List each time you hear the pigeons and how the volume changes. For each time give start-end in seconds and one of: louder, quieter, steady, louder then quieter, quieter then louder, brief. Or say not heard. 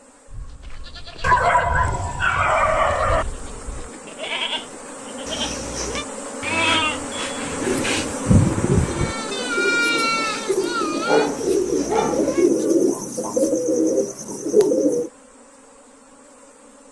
7.5-15.1 louder.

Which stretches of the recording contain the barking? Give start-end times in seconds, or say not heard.
1.2-3.2, 11.1-12.2.